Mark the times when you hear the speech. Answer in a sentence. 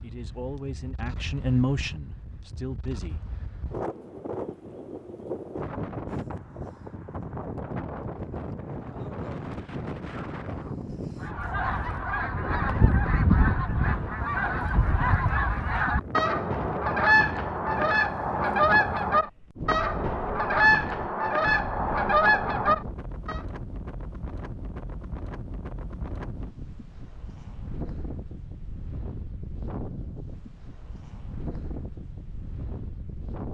You can hear the speech from 0.0 to 3.2 s.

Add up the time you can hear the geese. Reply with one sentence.
You can hear the geese for 12 seconds altogether.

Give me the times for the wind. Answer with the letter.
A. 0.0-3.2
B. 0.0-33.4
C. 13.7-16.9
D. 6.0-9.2
B.